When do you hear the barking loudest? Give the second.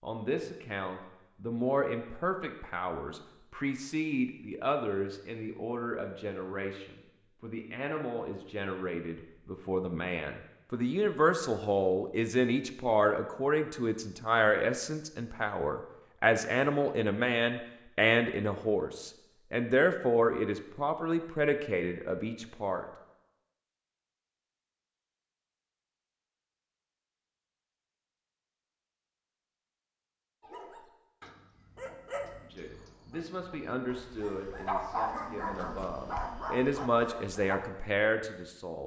35 s.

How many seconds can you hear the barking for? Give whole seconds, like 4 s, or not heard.
7 s.